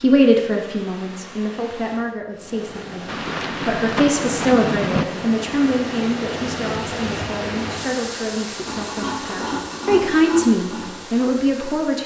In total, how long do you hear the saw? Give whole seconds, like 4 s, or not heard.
3 s.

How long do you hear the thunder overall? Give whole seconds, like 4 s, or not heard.
2 s.